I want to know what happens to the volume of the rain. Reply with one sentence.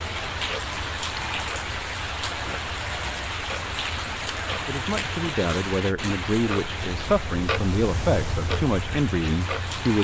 The loudness of the rain goes down.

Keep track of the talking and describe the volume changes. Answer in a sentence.
The loudness of the talking stays about the same.